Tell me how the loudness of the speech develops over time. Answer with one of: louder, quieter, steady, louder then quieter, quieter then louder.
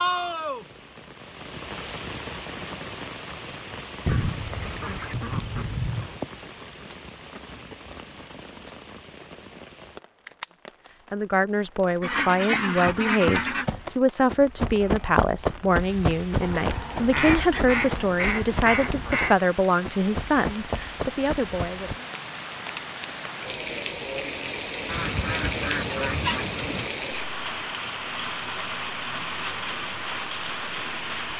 steady.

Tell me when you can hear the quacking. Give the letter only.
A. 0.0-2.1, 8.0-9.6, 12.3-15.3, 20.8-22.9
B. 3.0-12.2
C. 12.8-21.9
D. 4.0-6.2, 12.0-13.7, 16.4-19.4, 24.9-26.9
D.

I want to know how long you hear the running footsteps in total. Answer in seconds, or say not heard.
9 s.